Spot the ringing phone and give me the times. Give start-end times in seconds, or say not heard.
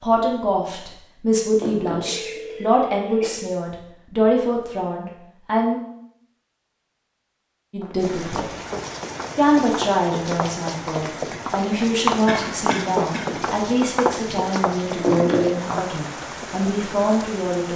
1.6-3.4, 15.0-15.5.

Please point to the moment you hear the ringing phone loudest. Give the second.
15 s.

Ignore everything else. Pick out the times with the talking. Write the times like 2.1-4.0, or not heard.
0.0-5.8, 7.7-8.5, 9.3-17.7.